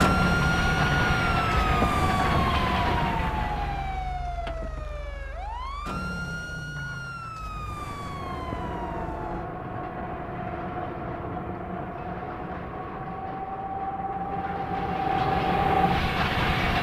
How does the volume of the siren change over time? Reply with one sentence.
The loudness of the siren goes down.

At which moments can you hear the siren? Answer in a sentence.
The siren can be heard from 0.0 to 9.5 s.